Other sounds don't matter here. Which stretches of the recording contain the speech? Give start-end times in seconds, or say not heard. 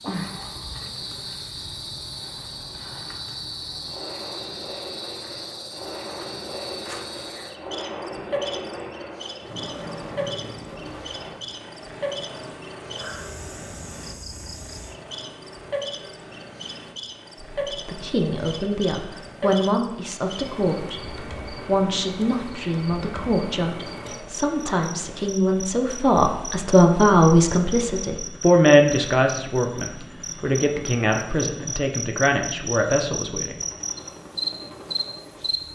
17.6-33.5.